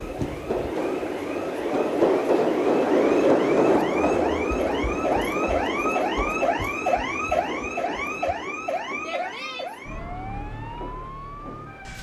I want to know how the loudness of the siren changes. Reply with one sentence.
The volume of the siren goes up, then down.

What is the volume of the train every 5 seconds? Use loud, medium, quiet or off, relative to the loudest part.
loud, medium, quiet.